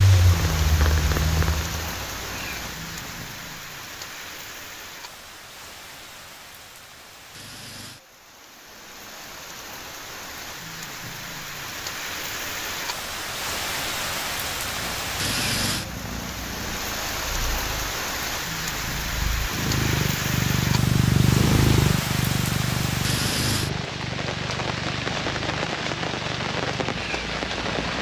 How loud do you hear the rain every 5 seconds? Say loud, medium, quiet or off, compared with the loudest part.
medium, quiet, loud, loud, loud, loud.